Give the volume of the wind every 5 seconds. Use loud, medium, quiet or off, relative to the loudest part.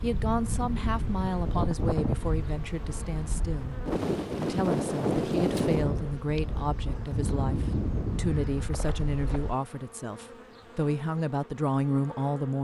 loud, loud, off.